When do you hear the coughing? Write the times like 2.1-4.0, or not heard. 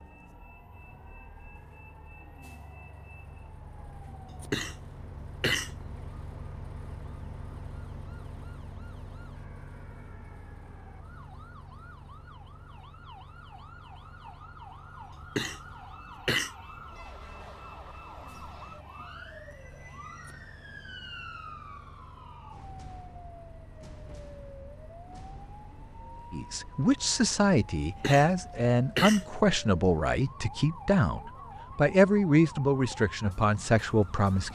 4.3-5.8, 15.2-16.5, 27.9-29.2.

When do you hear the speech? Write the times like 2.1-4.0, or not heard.
26.3-34.5.